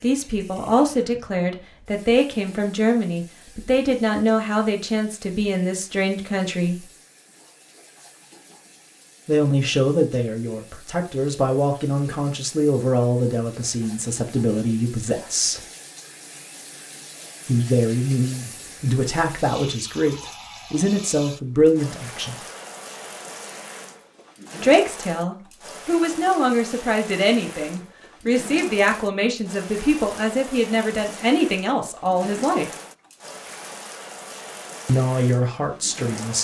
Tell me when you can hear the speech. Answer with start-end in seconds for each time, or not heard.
0.0-6.9, 9.2-15.6, 17.4-22.4, 24.6-32.7, 34.9-36.3.